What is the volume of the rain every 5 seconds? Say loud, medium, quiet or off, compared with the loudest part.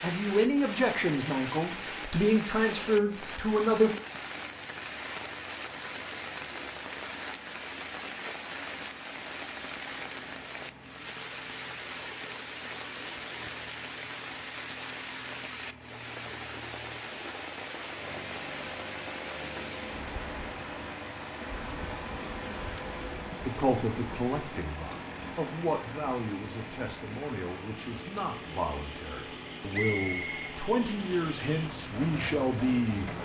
loud, loud, loud, loud, loud, medium, loud.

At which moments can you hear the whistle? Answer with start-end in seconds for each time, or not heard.
29.7-30.6.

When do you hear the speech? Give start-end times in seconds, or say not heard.
0.0-3.9, 23.4-33.1.